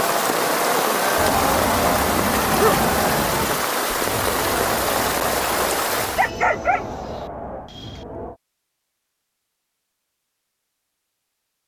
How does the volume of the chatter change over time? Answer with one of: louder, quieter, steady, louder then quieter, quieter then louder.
quieter.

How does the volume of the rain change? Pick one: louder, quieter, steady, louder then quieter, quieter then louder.
steady.